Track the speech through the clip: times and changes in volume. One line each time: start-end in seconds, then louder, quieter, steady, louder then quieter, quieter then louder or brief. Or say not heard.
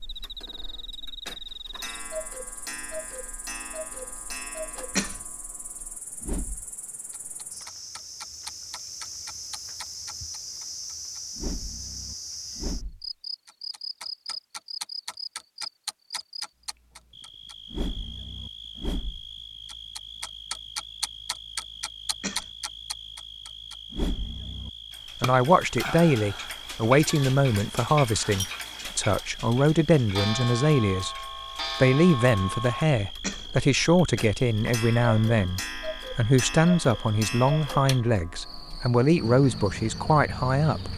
25.2-40.9 steady.